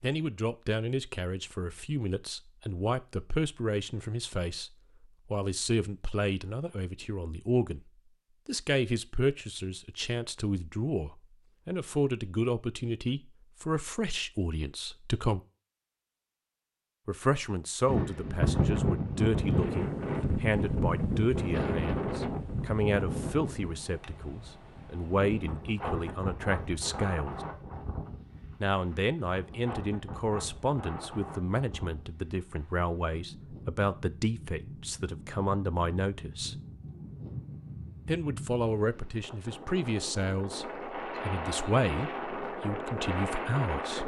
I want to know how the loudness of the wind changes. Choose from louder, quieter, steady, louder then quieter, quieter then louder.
quieter then louder.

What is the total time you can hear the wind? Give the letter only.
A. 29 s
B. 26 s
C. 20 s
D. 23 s
B.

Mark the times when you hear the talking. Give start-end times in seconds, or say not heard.
0.0-4.7, 5.3-7.8, 8.4-15.4, 17.1-27.4, 28.6-36.5, 38.0-44.0.